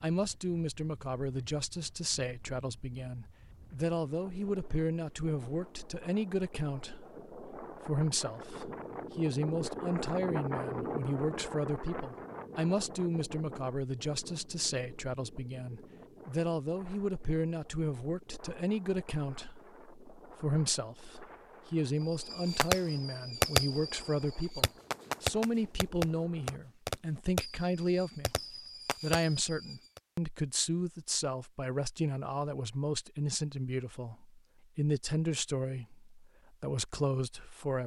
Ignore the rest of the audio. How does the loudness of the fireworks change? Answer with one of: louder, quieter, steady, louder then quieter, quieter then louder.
quieter.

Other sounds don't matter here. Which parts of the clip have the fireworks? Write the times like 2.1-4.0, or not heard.
22.1-30.0.